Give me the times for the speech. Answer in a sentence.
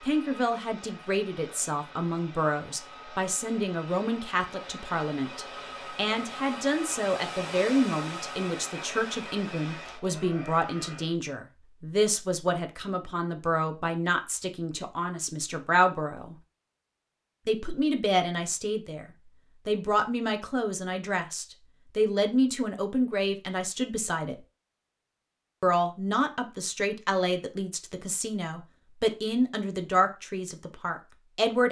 The speech can be heard from 0.0 to 16.4 s, from 17.4 to 19.1 s, from 19.6 to 24.4 s and from 25.6 to 31.6 s.